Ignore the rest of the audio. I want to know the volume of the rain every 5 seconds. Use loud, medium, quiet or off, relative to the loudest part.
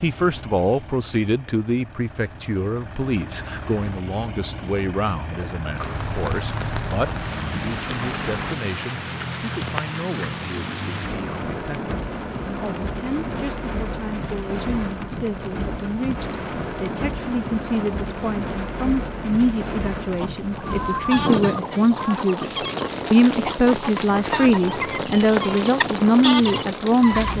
off, loud, loud, loud, loud, loud.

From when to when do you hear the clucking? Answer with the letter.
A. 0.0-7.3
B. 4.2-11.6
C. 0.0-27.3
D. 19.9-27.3
D.